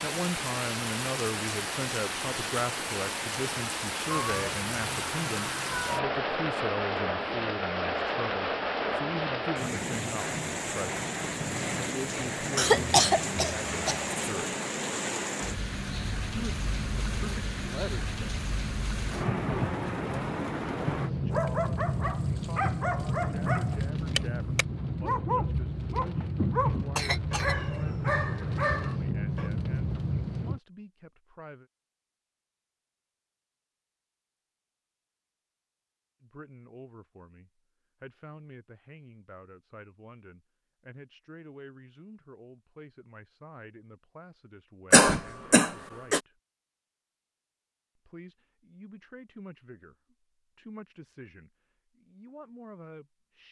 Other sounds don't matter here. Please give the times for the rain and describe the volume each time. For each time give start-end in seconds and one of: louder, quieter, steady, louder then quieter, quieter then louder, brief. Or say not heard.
0.0-30.6 steady.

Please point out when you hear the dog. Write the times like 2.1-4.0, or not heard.
21.3-29.5.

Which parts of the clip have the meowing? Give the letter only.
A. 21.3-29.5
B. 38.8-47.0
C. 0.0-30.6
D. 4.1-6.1
D.